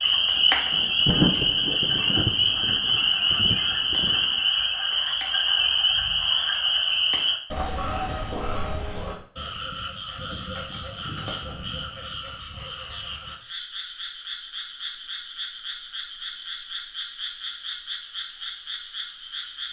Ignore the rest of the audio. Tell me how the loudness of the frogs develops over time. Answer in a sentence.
The loudness of the frogs goes down.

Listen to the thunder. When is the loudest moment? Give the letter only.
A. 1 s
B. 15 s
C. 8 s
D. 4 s
A.